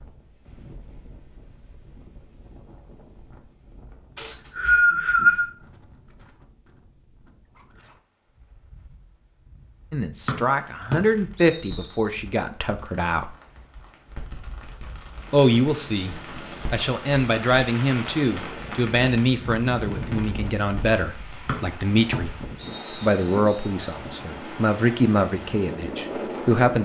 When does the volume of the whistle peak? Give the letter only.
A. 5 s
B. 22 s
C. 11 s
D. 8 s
A.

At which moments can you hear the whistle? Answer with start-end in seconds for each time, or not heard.
4.2-5.5, 10.2-11.9, 21.4-23.6.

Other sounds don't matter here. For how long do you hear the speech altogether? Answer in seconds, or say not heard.
14 s.